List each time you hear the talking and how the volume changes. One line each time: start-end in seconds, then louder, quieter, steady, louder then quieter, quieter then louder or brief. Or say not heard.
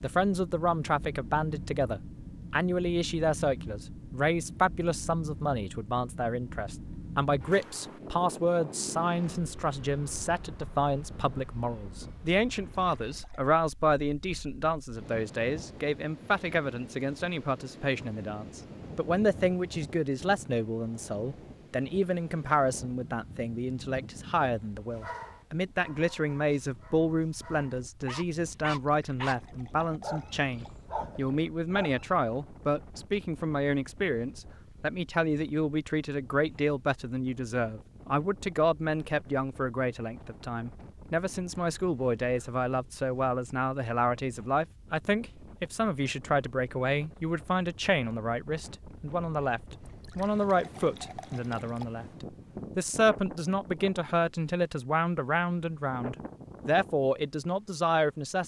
0.0-58.4 steady.